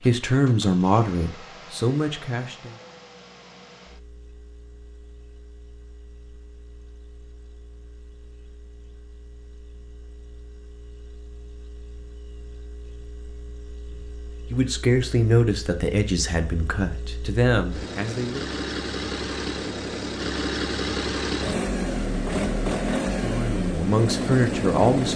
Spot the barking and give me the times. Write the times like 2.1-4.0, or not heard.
not heard.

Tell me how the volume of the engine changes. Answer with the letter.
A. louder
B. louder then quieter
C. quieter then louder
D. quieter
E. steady
C.